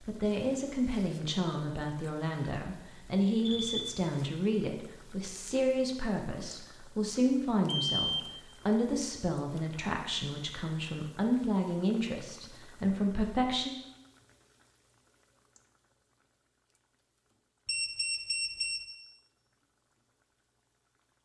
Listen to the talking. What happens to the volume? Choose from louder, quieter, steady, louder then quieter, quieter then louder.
steady.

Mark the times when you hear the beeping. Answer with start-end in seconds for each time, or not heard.
3.5-4.0, 7.7-8.3, 17.6-18.8.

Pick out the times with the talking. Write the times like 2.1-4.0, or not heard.
0.0-13.8.